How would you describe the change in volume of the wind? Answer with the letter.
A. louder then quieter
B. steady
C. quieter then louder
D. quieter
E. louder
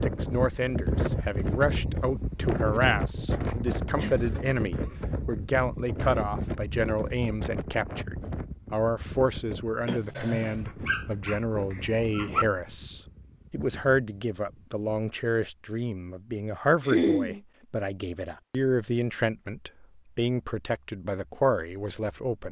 D.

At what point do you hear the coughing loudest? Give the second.
17 s.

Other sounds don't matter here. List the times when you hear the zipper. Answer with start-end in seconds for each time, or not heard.
not heard.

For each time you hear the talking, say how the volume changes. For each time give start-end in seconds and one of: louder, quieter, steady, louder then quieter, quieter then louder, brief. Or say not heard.
0.0-22.4 steady.